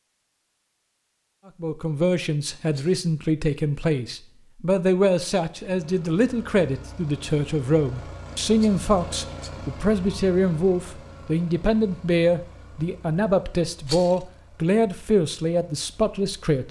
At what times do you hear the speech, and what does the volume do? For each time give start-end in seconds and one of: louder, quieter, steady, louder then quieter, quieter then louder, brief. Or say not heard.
1.6-16.6 steady.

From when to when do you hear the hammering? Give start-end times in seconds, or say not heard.
not heard.